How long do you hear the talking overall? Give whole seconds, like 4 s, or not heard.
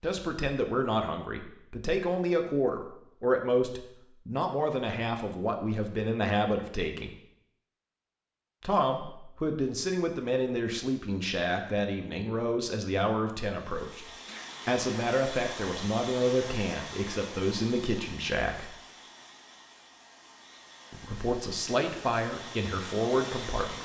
20 s.